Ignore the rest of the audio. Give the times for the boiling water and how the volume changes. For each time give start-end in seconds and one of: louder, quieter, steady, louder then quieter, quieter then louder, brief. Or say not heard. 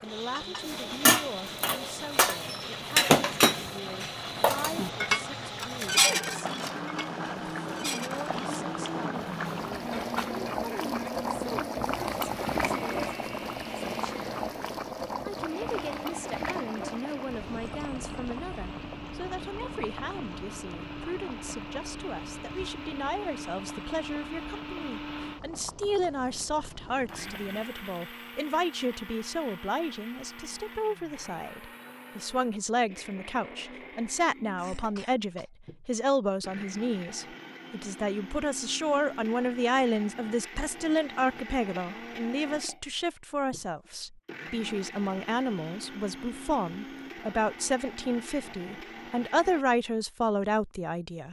0.0-27.5 louder then quieter.